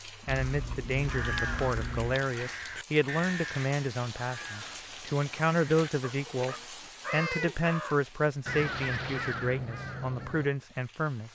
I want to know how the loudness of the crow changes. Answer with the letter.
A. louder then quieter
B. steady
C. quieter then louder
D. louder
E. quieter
C.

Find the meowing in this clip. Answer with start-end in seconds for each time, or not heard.
0.2-2.2, 6.4-7.5.